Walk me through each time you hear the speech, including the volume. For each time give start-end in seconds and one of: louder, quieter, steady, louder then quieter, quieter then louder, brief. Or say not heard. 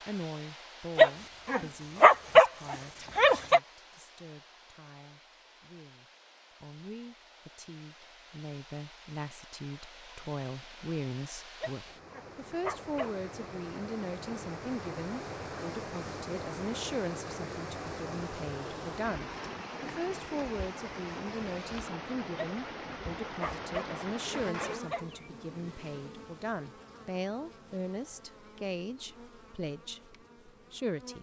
0.1-31.1 louder.